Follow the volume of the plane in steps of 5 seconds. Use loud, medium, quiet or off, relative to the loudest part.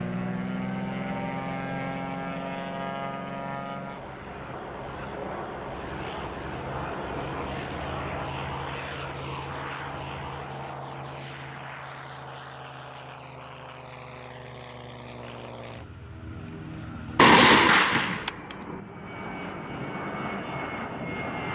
loud, loud, medium, medium, loud.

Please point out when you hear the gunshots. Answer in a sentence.
The gunshots can be heard from 17.1 to 18.8 s.